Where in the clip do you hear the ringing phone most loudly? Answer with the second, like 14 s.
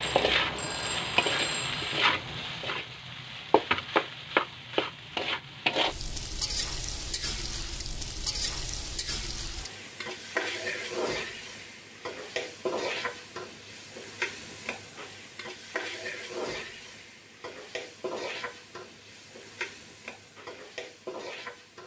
1 s.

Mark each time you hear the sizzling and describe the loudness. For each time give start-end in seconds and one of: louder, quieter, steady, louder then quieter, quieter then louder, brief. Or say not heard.
0.0-21.8 quieter.